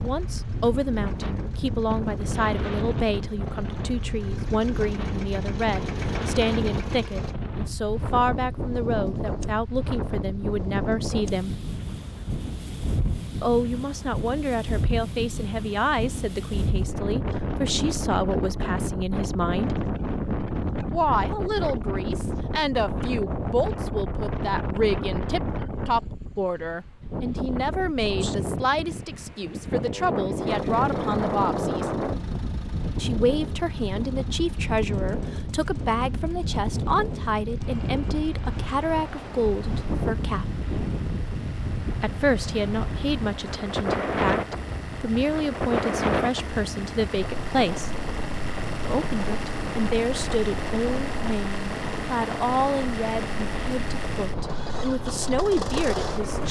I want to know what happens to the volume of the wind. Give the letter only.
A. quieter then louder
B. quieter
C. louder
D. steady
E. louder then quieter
D.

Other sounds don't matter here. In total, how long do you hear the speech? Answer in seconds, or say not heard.
50 s.